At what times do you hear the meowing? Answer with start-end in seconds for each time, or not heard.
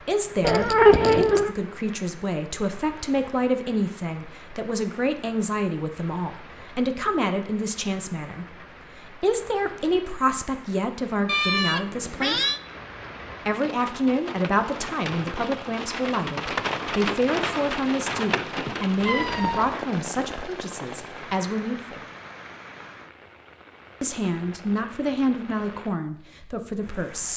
0.4-1.5, 11.2-12.6, 19.0-19.8.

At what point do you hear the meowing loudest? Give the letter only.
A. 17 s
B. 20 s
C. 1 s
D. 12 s
C.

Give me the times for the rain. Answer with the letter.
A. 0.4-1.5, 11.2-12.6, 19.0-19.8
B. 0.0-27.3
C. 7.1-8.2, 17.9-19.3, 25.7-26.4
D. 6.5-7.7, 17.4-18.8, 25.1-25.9
B.